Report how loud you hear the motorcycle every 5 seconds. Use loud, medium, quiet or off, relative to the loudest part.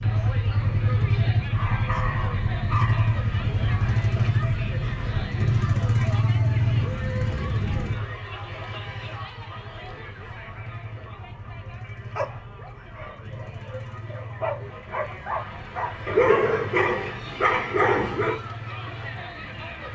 loud, loud, quiet, quiet.